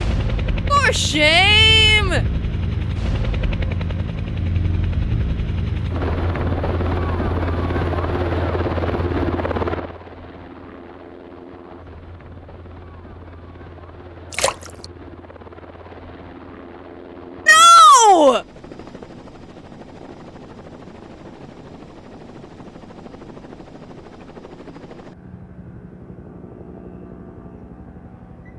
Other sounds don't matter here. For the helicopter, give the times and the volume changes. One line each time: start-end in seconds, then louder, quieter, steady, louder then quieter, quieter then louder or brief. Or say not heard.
0.0-28.5 quieter.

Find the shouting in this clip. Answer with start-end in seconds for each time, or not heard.
0.7-2.2, 17.4-18.4.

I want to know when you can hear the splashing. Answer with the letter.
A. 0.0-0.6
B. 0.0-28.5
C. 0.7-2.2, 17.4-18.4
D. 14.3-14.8
D.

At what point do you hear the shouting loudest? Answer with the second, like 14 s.
18 s.